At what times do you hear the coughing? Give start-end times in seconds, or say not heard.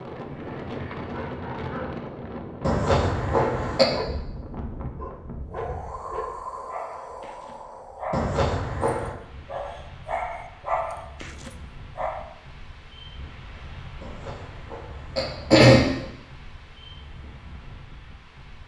2.6-3.9, 8.1-9.2, 14.0-15.9.